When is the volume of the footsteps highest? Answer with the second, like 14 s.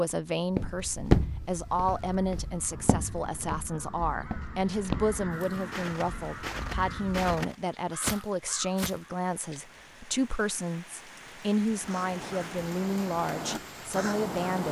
1 s.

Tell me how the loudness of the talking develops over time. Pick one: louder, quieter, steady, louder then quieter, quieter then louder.
steady.